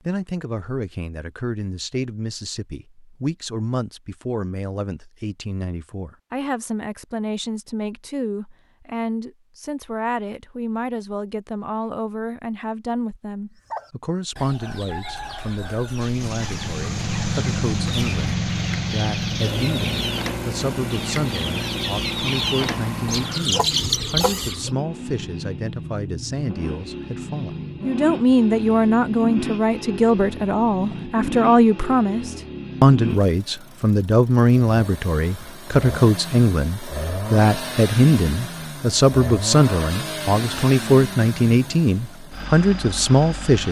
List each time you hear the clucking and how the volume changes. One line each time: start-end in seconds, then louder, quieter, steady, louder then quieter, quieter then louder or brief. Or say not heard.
13.7-24.7 louder.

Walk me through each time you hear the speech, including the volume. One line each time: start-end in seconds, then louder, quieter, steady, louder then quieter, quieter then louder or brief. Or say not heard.
0.1-43.6 louder.